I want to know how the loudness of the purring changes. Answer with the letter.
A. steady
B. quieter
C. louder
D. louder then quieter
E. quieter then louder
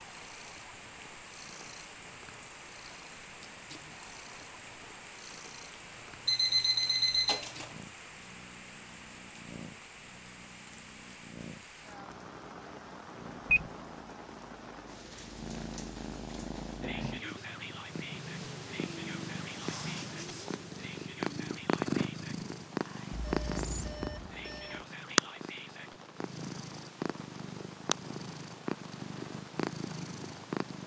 C.